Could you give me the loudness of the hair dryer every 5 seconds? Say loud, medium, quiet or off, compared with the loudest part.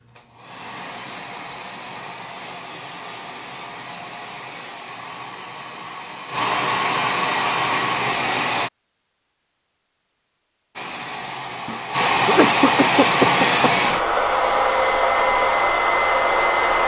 quiet, medium, loud, loud.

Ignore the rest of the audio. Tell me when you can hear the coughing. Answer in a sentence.
The coughing can be heard from 11.7 to 13.7 s.